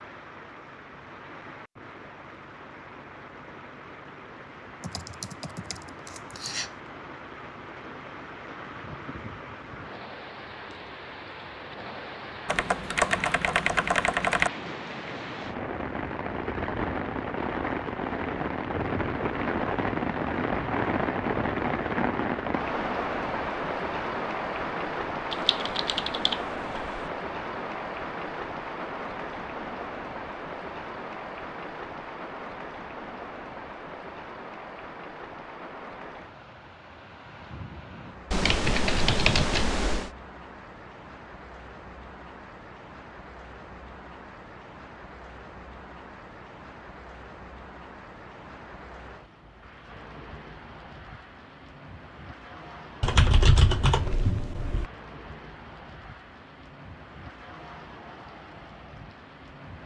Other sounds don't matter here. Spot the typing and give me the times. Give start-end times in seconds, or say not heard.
4.8-6.7, 12.4-14.5, 25.3-26.4, 38.3-40.1, 53.0-54.9.